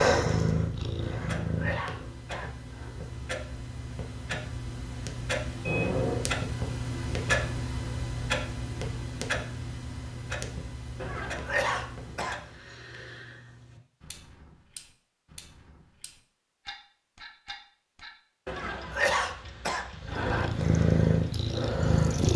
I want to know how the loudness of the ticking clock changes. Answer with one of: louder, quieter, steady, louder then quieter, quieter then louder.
louder then quieter.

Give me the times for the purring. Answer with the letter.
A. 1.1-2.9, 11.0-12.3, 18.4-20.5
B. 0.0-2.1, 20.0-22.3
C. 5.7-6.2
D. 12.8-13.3
B.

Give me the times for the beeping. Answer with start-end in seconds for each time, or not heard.
5.7-6.2.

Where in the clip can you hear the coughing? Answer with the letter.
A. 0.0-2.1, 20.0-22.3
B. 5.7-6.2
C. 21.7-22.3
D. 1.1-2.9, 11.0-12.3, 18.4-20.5
D.